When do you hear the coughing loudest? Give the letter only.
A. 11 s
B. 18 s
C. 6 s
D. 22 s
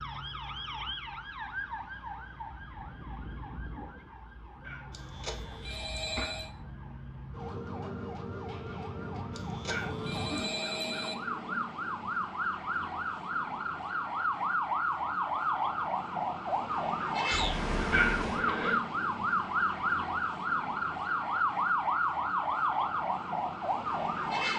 B.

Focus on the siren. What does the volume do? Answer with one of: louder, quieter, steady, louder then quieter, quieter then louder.
louder.